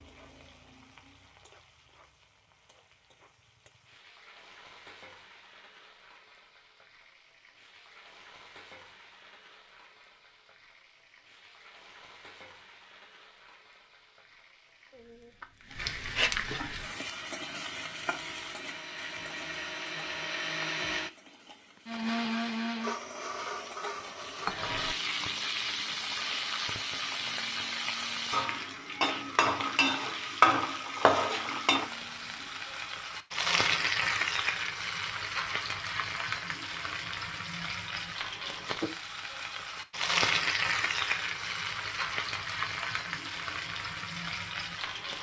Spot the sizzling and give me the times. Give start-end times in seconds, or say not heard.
0.0-45.1.